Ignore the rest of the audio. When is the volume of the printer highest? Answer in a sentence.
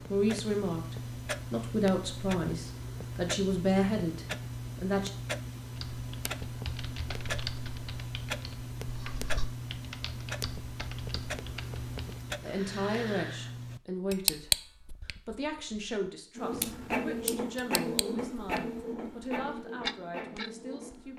The volume of the printer peaks at 17 seconds.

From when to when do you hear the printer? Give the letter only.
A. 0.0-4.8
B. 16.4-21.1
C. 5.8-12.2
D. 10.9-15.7
B.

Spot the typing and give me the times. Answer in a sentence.
You can hear the typing from 5.8 to 12.2 s.